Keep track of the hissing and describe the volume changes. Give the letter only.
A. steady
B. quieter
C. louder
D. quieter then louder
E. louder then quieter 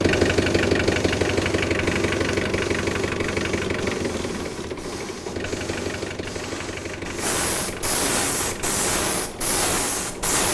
C.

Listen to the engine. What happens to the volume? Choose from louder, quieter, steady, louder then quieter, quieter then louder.
quieter.